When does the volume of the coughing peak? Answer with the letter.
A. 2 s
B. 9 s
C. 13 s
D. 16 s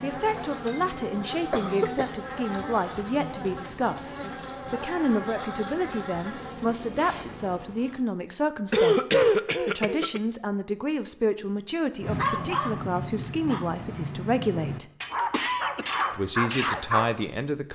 B.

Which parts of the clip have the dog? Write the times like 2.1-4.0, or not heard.
12.0-17.1.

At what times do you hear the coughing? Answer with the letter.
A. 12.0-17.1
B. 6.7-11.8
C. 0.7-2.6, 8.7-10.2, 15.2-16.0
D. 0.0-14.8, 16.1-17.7
C.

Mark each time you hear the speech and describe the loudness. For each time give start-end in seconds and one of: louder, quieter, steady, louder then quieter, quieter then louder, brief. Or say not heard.
0.0-14.8 steady
16.1-17.7 brief.